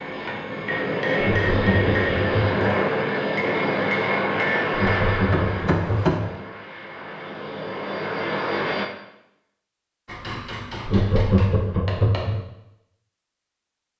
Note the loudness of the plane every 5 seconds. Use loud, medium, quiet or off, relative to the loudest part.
loud, medium, off.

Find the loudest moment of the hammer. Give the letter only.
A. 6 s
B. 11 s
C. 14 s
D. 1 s
A.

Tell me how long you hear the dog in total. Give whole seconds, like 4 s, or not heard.
not heard.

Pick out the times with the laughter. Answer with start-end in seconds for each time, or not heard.
1.2-2.7, 4.7-6.2, 10.8-12.4.